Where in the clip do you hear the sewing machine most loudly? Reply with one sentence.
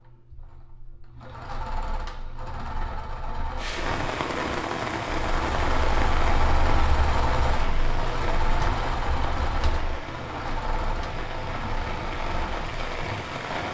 The loudest moment of the sewing machine is at 7 seconds.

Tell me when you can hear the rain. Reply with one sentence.
You can hear the rain from 3.5 to 13.6 s.